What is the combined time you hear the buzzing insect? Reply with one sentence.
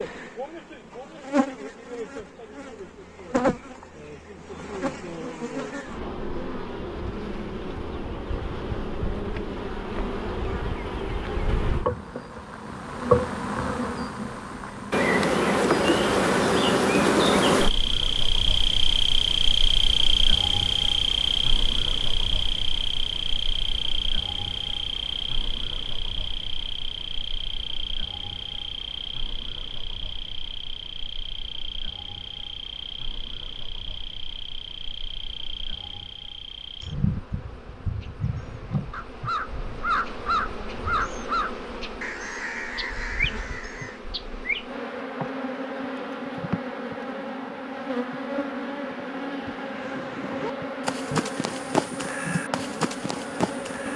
The buzzing insect can be heard for 54 seconds in total.